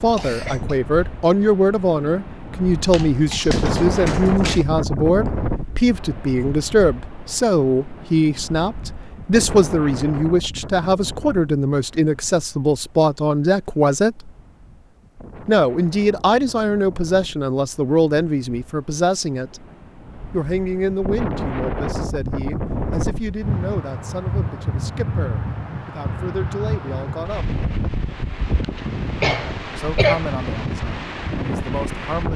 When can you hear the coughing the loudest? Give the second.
30 s.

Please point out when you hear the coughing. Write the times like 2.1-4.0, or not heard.
0.1-0.8, 28.6-30.2.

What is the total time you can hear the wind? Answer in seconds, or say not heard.
32 s.